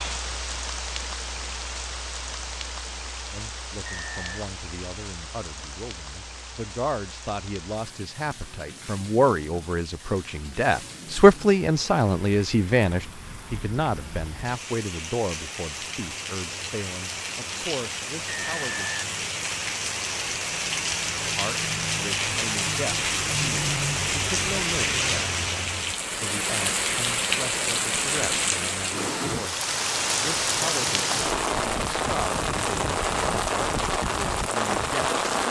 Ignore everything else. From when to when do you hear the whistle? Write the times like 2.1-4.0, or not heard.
3.9-4.5, 18.2-19.1.